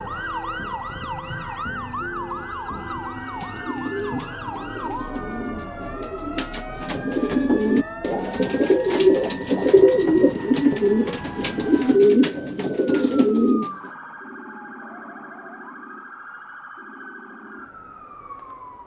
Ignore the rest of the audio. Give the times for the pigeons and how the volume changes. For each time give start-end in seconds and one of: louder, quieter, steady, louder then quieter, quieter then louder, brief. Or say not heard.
3.2-13.9 louder.